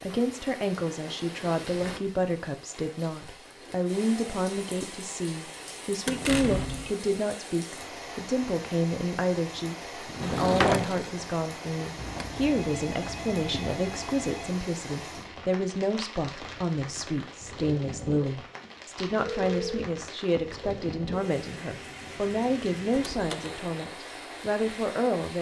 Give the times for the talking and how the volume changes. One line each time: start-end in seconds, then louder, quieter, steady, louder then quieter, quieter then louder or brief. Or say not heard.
0.0-25.3 steady.